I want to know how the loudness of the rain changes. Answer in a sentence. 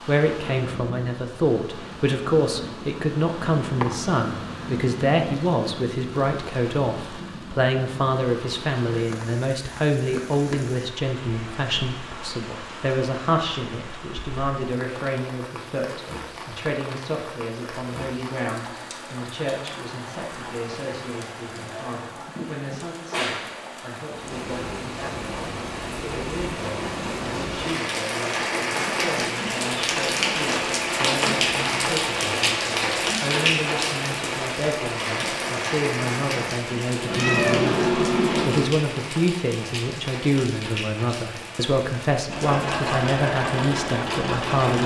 The volume of the rain goes up, then down.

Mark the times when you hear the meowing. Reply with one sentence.
You can hear the meowing from 3.4 to 5.4 s and from 37.0 to 38.7 s.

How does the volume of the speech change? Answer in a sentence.
The loudness of the speech goes down, then up.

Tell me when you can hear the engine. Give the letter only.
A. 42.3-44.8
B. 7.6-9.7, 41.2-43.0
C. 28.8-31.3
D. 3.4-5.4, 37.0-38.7
A.